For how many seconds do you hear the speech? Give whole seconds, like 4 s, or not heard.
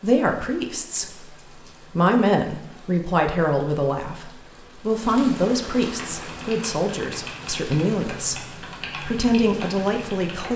10 s.